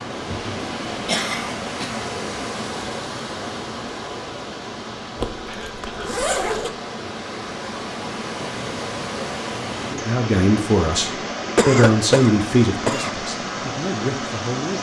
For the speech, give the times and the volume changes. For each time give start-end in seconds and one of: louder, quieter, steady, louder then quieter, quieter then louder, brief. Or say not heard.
9.8-14.7 quieter then louder.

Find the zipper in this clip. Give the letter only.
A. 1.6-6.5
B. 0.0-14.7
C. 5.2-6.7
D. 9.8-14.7
C.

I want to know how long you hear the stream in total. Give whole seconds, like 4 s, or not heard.
15 s.